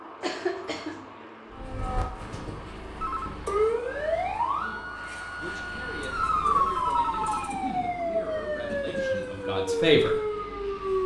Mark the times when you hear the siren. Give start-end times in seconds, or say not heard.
1.5-11.0.